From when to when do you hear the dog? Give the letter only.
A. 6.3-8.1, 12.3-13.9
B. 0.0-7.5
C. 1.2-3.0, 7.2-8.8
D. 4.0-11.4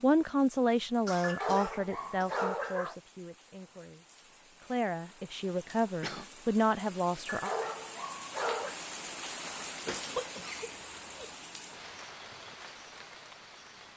C.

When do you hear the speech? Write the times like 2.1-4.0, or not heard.
0.0-7.5.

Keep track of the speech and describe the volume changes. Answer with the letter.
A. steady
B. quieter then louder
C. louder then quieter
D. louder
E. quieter
B.